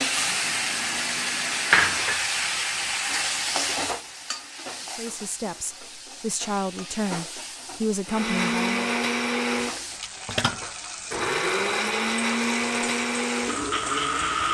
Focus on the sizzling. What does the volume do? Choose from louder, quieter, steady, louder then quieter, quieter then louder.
quieter.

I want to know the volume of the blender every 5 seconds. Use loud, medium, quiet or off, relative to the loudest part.
quiet, loud, loud.